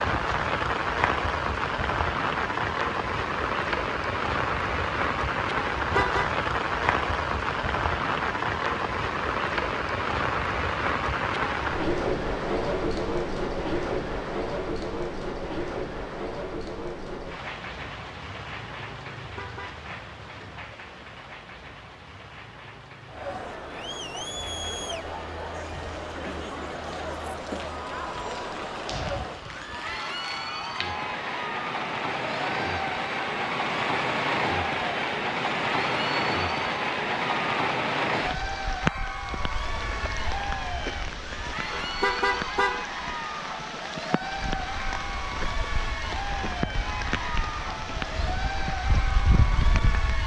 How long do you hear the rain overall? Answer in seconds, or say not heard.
50 s.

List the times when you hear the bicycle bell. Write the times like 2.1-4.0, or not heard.
not heard.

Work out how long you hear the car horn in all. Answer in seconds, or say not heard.
2 s.